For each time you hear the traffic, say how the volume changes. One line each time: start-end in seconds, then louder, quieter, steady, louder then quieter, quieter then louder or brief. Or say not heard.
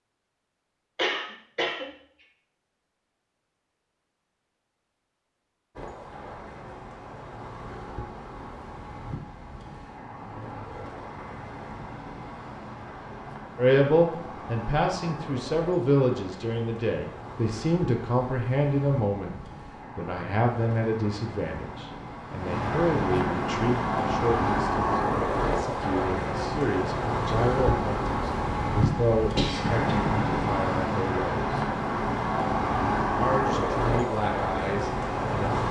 5.8-35.6 louder.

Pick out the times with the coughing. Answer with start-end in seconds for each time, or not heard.
0.9-1.9, 29.4-29.9.